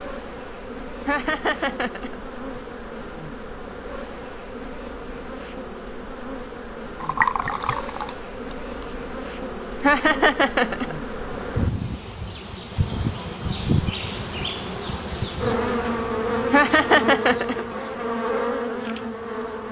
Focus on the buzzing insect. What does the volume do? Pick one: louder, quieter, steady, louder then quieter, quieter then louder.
louder.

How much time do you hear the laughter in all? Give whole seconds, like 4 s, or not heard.
4 s.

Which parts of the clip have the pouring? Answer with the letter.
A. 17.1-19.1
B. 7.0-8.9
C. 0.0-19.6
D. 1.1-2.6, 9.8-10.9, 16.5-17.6
B.